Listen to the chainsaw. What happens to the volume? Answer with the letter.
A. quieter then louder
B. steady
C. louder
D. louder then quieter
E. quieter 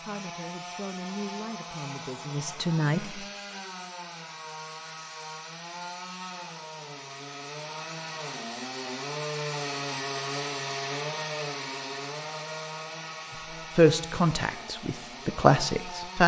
D.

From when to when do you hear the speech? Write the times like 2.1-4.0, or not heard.
0.0-3.2, 13.8-16.2.